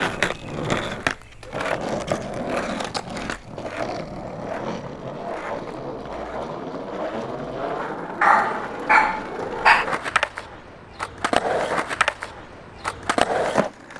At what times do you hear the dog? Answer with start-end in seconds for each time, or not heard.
8.2-9.8.